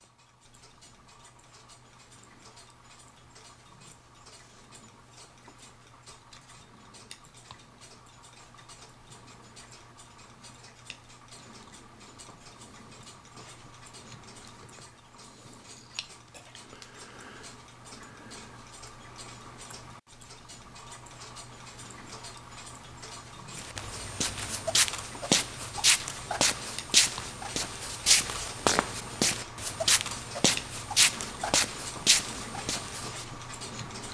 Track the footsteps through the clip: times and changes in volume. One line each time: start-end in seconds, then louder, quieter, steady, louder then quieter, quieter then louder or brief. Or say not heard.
23.6-33.2 steady.